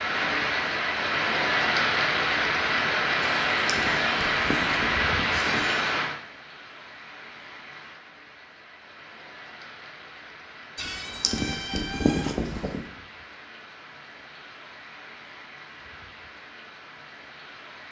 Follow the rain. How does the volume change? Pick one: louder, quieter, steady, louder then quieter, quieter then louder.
quieter.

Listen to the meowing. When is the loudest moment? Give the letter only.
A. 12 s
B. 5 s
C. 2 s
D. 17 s
A.